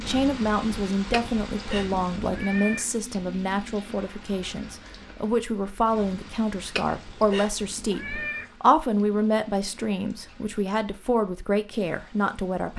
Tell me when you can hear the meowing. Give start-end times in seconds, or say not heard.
1.1-2.9, 6.8-8.6.